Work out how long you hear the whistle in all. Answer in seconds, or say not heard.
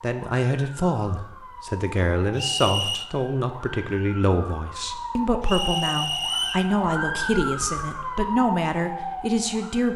2 s.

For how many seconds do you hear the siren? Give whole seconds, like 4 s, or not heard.
10 s.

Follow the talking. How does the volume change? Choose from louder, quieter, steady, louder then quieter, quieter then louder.
steady.